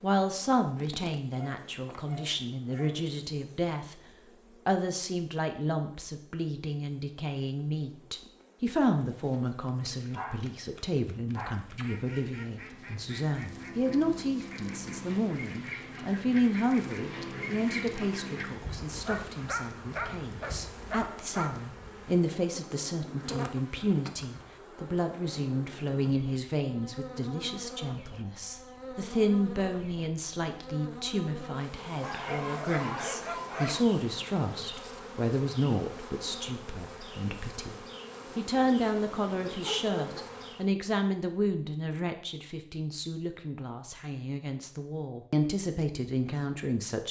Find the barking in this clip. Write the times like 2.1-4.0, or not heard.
1.4-3.0, 9.8-11.8, 19.1-21.7, 32.0-33.9, 38.2-40.2.